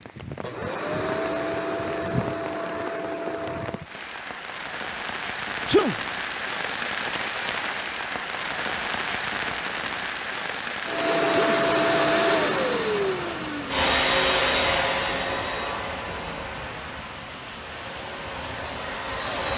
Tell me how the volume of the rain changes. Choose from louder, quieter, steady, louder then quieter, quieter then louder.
louder then quieter.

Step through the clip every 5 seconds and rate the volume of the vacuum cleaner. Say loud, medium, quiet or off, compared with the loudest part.
medium, off, loud, medium.